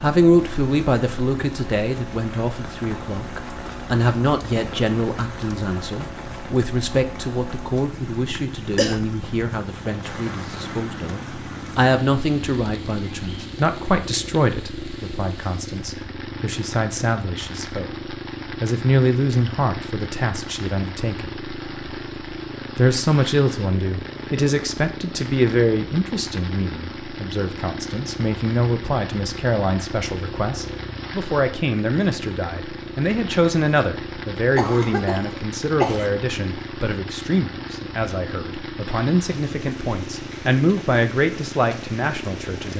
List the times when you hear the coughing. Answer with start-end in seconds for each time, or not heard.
8.3-8.9, 34.5-36.1.